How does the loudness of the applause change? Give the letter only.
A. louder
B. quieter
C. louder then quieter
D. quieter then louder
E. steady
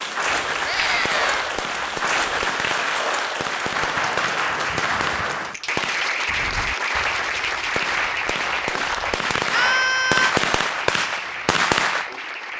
B.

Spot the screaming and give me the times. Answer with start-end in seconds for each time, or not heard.
0.7-1.4, 9.5-10.3.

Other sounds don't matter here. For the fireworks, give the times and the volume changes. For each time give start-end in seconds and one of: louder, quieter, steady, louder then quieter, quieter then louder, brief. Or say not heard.
0.2-12.1 louder.